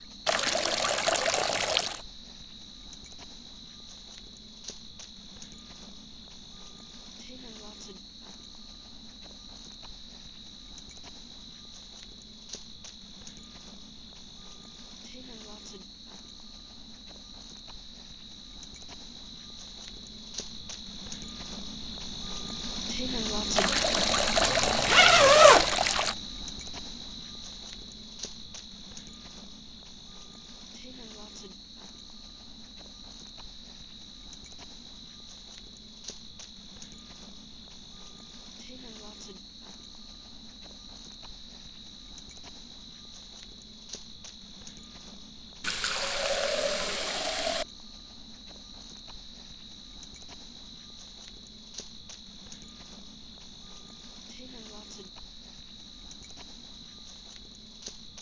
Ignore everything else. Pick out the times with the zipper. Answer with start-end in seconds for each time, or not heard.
24.4-25.7.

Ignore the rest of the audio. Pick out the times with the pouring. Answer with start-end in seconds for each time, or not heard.
0.2-2.0, 23.6-26.1, 45.6-47.6.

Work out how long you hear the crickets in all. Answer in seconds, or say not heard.
58 s.